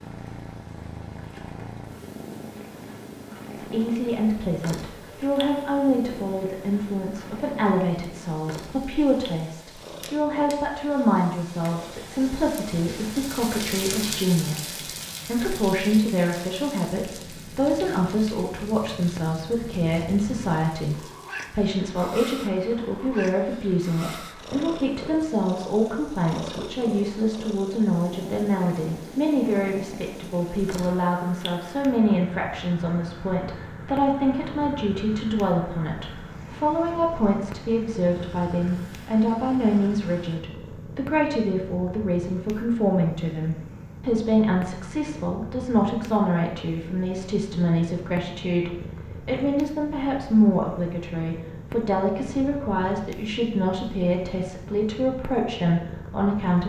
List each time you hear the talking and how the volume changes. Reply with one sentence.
The talking can be heard from 3.5 to 56.6 s, at a steady volume.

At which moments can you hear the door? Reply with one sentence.
You can't hear the door here.